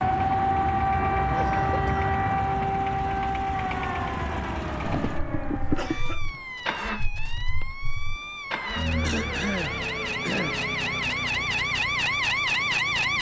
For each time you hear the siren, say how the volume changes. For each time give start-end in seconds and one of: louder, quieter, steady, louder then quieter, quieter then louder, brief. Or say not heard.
0.0-13.1 quieter then louder.